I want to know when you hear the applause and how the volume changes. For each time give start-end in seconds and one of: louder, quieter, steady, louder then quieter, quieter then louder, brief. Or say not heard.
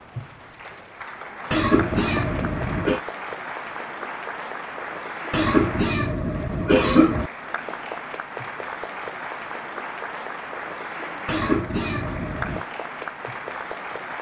0.0-14.1 steady.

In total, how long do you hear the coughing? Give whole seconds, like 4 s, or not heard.
5 s.